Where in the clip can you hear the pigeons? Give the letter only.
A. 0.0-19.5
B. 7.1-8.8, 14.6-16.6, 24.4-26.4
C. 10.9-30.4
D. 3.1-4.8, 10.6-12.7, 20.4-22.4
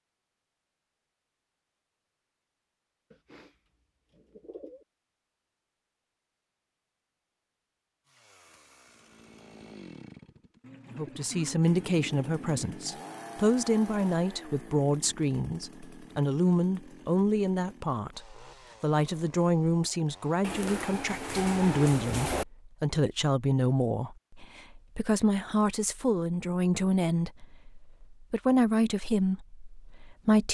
D.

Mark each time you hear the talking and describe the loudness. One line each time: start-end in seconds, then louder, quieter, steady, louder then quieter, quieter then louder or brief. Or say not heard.
10.9-30.4 steady.